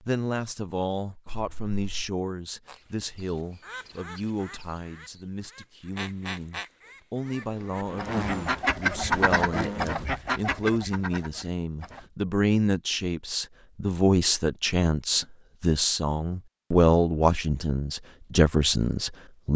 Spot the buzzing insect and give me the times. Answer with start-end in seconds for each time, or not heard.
7.2-10.0.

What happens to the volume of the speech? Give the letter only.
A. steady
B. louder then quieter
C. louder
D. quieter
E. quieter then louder
C.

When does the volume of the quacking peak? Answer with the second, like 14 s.
9 s.